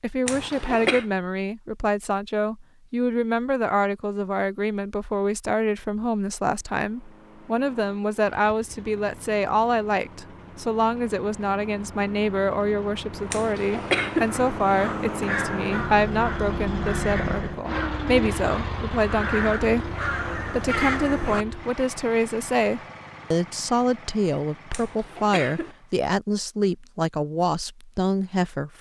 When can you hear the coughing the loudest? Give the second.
14 s.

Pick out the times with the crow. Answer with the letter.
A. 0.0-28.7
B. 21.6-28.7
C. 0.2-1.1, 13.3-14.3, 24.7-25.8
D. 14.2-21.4
D.